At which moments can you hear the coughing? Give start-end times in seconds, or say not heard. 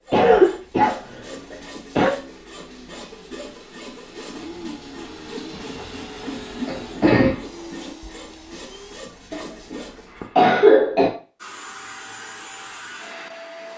0.1-2.1, 5.5-7.4, 9.3-11.1.